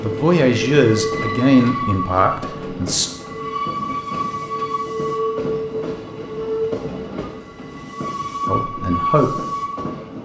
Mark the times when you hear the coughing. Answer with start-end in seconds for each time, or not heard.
not heard.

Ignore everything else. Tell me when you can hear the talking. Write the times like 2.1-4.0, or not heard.
0.0-3.1, 8.4-9.4.